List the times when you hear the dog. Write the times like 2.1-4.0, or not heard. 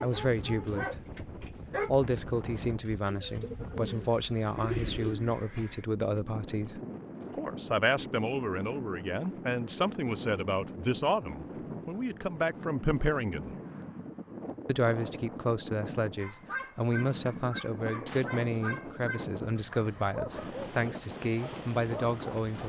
0.0-1.9, 16.2-22.6.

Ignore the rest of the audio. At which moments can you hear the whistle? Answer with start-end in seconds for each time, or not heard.
not heard.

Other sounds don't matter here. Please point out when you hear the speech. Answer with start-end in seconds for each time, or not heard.
0.0-0.9, 1.9-13.6, 14.7-22.6.